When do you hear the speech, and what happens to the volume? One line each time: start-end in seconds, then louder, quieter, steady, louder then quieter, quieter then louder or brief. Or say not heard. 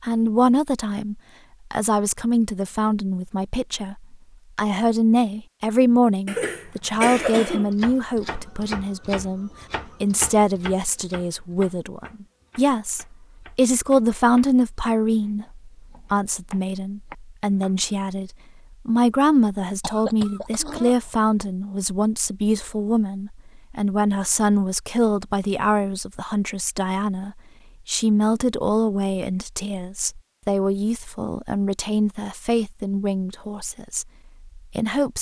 0.0-35.1 steady.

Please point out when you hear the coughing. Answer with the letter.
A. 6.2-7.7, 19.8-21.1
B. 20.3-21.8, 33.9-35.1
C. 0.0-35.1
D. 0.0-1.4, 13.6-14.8
A.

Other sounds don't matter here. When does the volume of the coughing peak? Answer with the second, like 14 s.
7 s.